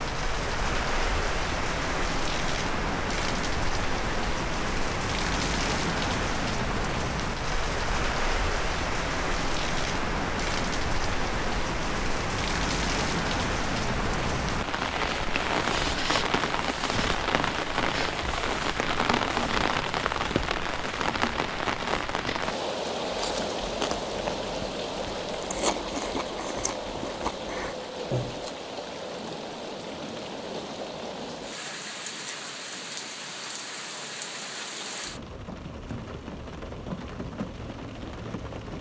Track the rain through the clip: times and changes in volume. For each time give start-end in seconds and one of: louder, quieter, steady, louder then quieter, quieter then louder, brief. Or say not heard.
0.0-38.7 quieter.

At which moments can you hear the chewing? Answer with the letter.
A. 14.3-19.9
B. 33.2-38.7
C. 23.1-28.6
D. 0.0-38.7
C.